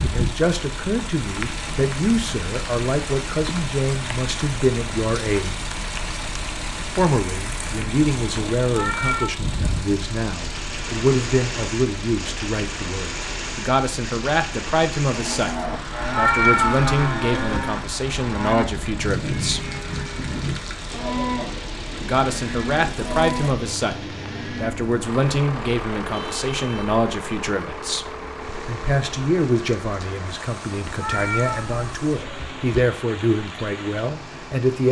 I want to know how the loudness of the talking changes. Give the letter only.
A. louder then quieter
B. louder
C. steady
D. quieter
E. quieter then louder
C.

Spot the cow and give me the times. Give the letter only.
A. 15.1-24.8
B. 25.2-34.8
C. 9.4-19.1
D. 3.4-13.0
A.